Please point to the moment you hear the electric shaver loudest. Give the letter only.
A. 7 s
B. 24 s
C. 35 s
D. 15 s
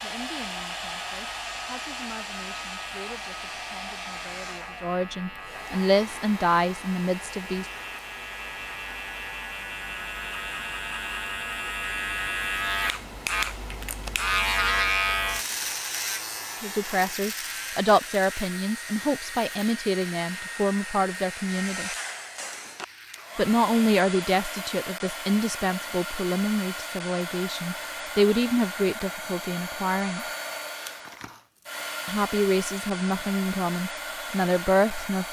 D.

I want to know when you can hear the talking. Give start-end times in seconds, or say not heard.
0.0-7.7, 16.6-21.9, 23.4-30.2, 32.0-35.2.